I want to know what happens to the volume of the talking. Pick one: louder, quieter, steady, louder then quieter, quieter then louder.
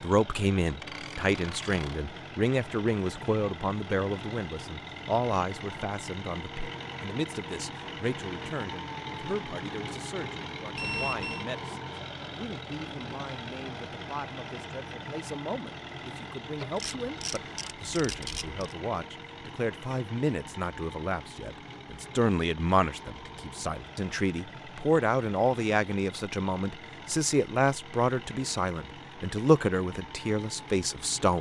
quieter then louder.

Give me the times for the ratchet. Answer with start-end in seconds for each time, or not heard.
0.6-2.0, 16.6-18.8.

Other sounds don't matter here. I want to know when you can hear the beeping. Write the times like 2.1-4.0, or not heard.
10.8-11.4.